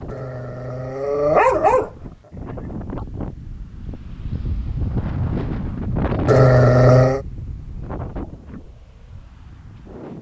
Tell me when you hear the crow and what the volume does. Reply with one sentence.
The crow can't be heard in this clip.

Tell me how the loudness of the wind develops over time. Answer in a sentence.
The loudness of the wind goes up, then down.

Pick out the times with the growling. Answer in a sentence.
You can hear the growling from 0.1 to 1.9 s and from 6.2 to 7.2 s.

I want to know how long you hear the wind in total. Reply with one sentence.
The wind can be heard for 10 seconds in total.